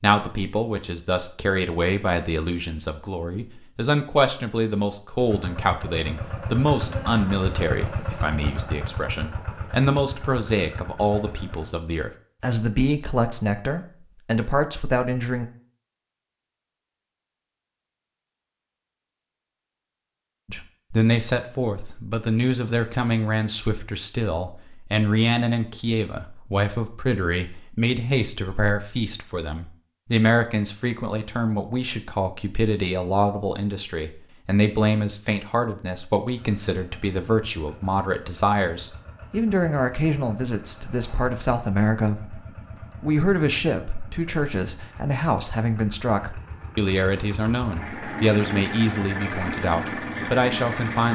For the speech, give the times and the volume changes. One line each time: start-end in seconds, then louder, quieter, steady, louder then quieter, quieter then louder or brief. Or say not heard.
0.0-15.4 steady
20.4-42.4 steady
43.0-51.0 steady.